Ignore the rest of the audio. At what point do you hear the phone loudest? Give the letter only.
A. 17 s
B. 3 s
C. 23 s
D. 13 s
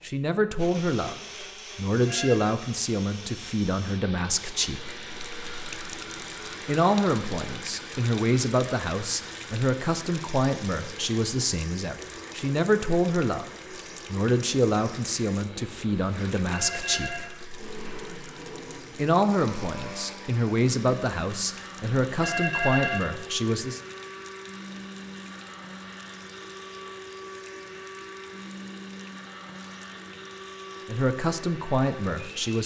C.